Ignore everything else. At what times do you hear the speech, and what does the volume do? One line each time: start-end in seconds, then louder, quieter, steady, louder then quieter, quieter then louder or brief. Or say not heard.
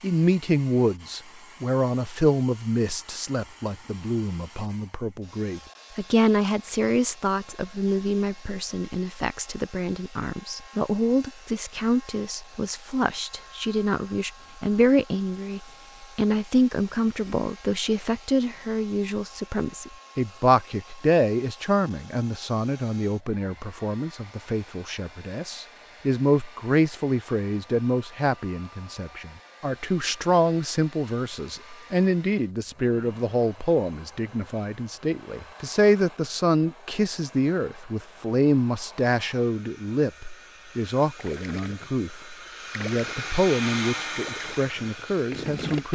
0.0-45.9 steady.